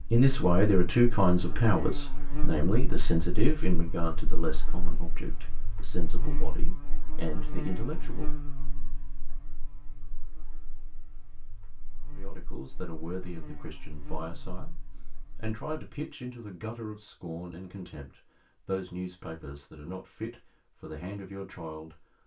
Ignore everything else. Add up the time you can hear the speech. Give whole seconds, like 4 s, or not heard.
18 s.